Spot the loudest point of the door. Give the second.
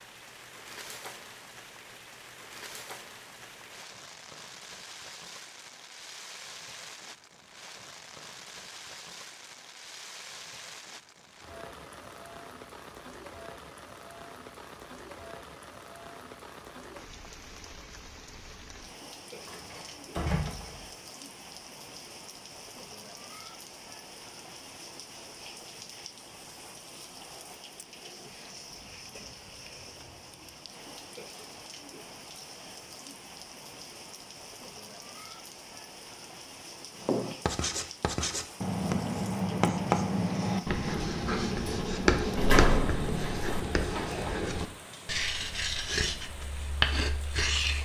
43 s.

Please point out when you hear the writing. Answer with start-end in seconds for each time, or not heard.
37.0-47.8.